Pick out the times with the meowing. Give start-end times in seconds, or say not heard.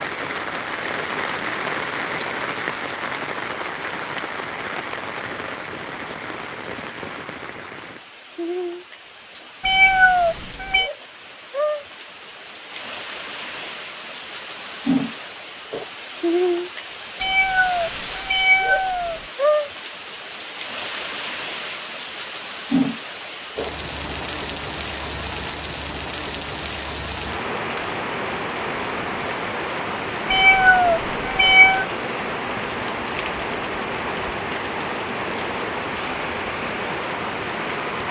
9.6-10.9, 17.2-19.2, 30.2-31.9.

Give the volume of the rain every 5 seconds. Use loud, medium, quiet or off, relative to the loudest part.
loud, medium, loud, loud, loud, loud, loud, loud.